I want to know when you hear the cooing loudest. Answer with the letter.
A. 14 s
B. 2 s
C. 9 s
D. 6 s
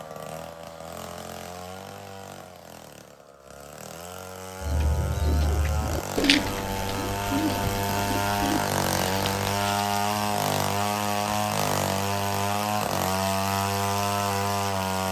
D.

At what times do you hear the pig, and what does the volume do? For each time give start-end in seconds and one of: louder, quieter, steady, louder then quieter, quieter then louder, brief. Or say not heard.
not heard.